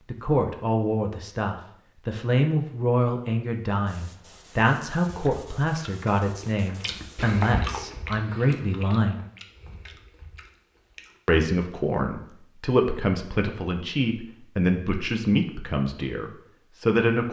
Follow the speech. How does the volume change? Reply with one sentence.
The volume of the speech stays about the same.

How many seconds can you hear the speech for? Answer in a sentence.
You can hear the speech for 15 seconds altogether.